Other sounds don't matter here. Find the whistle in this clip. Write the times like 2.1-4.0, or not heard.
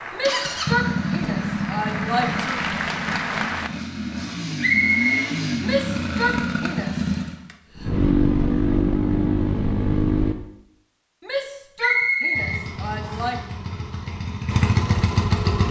4.6-5.2, 11.8-13.3.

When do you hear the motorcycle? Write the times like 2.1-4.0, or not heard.
0.0-10.3, 12.3-15.6.